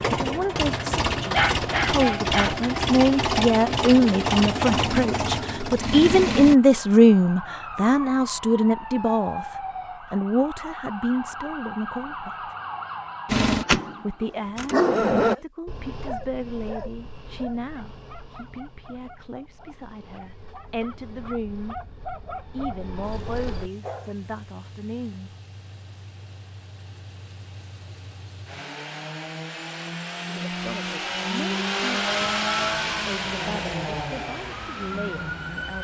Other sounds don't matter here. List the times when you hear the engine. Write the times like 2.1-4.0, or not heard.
0.0-6.5, 13.2-15.3, 23.0-35.7.